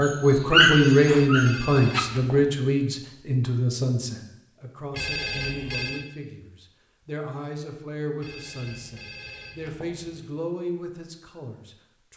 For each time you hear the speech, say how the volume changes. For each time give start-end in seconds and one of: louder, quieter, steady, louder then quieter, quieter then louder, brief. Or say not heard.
0.0-12.1 quieter.